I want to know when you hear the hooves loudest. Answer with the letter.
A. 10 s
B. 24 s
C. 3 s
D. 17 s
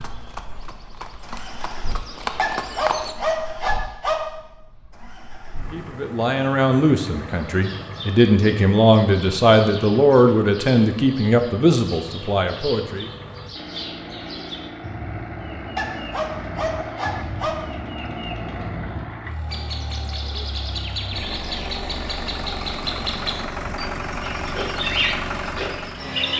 C.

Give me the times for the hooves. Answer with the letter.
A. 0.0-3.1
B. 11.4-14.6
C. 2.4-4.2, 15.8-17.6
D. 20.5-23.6
A.